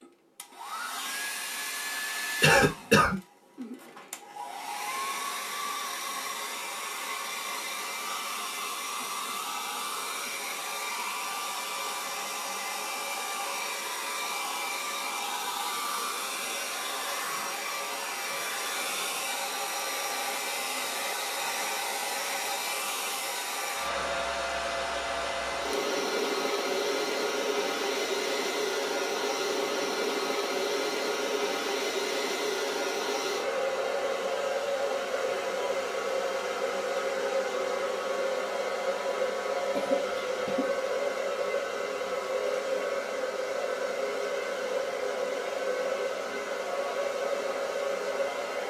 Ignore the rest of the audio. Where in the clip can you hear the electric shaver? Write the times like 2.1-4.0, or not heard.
not heard.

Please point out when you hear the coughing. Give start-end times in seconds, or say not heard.
2.4-3.2, 39.7-40.8.